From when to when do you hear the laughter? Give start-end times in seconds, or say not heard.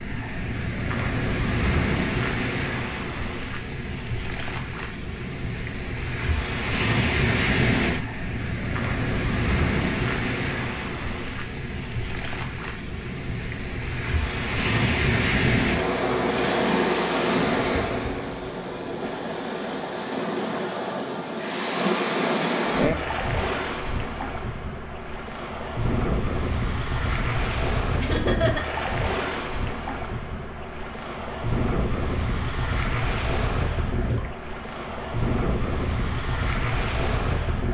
28.0-28.8.